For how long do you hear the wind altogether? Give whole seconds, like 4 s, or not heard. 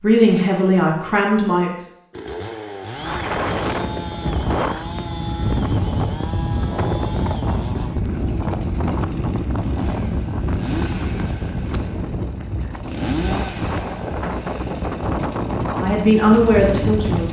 14 s.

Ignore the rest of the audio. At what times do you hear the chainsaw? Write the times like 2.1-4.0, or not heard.
2.1-17.2.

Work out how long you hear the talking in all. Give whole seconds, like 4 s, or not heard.
3 s.